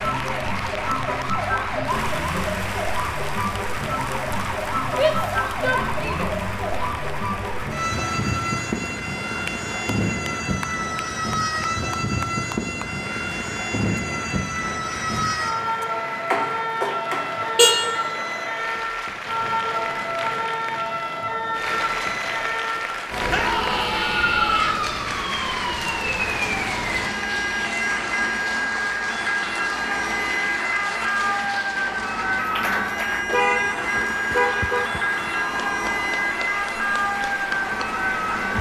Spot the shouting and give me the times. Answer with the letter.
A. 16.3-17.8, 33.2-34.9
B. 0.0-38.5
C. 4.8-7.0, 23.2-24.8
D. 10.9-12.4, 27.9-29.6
C.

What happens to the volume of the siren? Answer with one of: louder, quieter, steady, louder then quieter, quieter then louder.
steady.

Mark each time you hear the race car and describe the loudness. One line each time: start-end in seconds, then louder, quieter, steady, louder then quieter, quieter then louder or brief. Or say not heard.
not heard.